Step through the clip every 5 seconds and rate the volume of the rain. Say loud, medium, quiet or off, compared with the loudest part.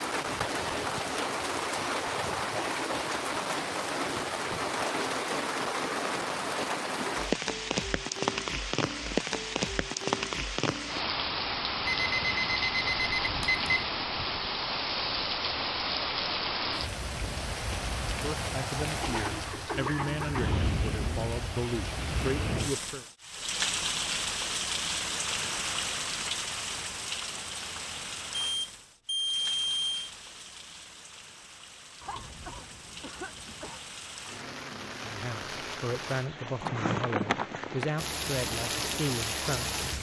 loud, loud, loud, loud, loud, medium, quiet, loud.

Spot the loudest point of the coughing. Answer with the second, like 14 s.
20 s.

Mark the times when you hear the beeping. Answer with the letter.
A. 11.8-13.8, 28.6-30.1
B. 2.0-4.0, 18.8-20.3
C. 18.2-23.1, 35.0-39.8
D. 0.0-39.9
A.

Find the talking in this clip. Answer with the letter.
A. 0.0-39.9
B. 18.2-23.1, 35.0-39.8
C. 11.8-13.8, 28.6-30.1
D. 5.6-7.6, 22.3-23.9
B.